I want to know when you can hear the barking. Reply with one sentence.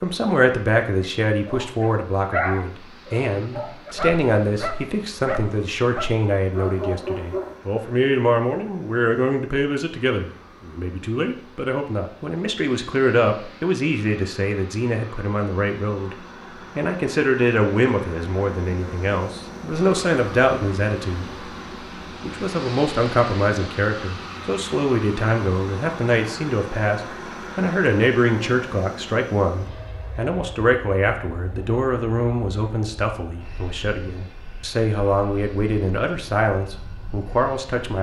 You can hear the barking from 1.0 to 7.6 s.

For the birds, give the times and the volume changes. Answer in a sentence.
The birds can't be heard in this clip.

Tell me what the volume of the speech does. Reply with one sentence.
The volume of the speech stays about the same.